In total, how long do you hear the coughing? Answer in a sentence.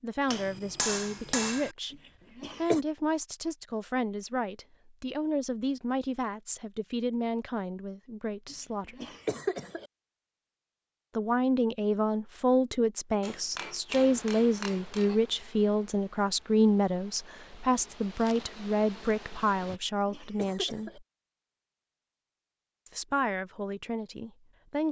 The coughing can be heard for 4 seconds in total.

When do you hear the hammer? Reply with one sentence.
You can hear the hammer from 0.2 to 1.8 s and from 13.2 to 15.2 s.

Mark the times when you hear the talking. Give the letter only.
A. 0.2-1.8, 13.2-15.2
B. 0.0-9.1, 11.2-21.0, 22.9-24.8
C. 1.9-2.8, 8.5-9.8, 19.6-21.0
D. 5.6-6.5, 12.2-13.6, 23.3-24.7
B.